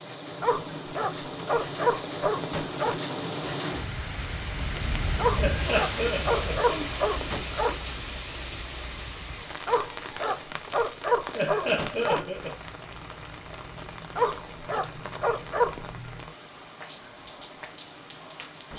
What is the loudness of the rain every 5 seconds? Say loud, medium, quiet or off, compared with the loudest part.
loud, loud, medium, medium.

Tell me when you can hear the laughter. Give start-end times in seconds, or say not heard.
5.3-6.9, 11.3-12.6.